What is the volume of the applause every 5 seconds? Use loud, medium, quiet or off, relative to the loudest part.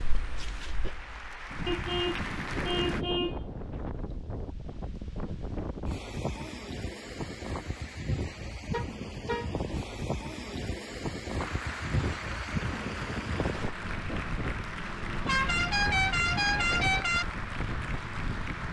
loud, off, loud, loud.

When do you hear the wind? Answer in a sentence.
You can hear the wind from 0.0 to 18.6 s.